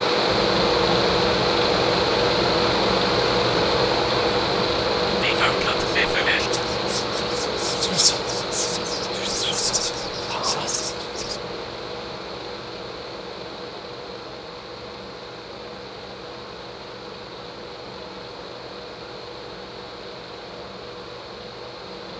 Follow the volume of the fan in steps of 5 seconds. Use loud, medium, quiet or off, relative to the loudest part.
loud, medium, quiet, quiet, quiet.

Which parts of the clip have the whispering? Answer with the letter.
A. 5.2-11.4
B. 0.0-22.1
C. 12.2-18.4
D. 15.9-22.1
A.